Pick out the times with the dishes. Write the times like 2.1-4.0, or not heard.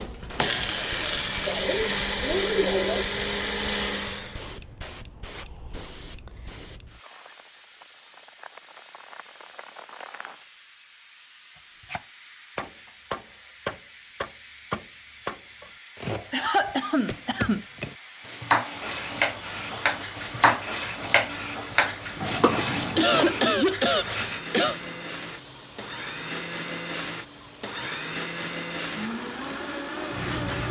not heard.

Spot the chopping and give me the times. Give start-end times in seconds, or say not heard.
11.6-23.6.